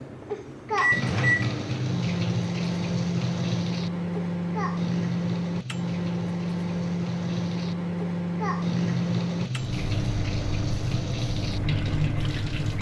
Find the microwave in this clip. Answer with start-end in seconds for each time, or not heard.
0.0-12.7.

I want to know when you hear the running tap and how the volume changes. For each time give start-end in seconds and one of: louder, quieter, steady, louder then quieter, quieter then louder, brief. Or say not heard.
0.0-12.7 quieter then louder.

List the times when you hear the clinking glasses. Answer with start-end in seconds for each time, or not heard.
not heard.